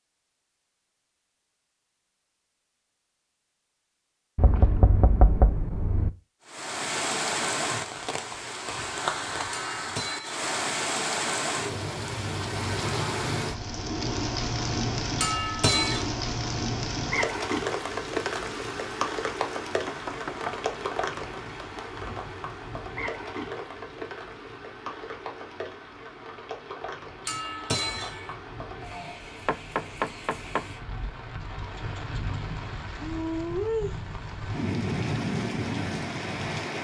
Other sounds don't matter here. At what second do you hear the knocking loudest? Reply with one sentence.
The loudest moment of the knocking is at 5 seconds.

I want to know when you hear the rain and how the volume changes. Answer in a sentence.
The rain can be heard from 6.5 to 36.8 s, getting quieter then louder.